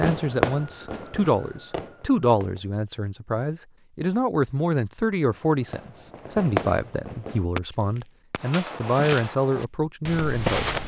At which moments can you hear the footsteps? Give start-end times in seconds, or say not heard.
8.4-10.8.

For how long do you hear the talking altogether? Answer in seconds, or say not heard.
11 s.